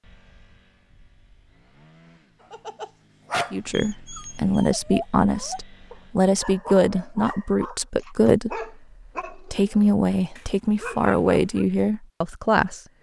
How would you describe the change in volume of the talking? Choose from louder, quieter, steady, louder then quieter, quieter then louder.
steady.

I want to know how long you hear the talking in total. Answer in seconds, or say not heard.
9 s.